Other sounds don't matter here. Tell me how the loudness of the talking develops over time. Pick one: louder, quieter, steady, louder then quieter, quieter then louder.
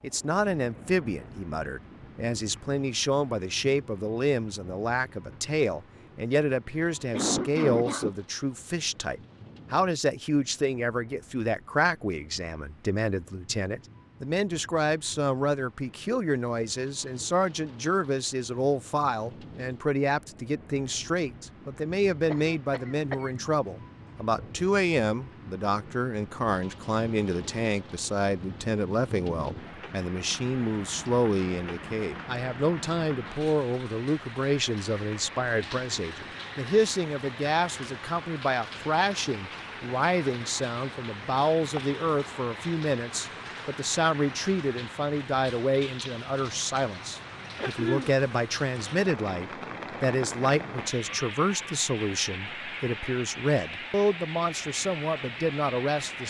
steady.